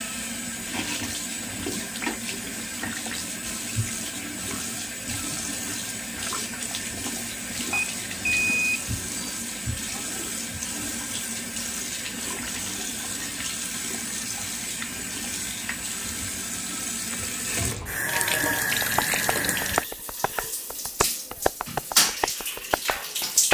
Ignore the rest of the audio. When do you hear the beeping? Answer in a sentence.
The beeping can be heard from 7.7 to 9.3 s.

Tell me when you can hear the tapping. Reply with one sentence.
The tapping can be heard from 18.8 to 23.4 s.